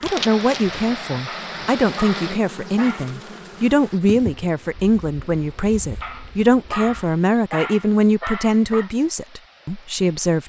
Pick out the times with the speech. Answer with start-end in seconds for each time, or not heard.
0.0-10.4.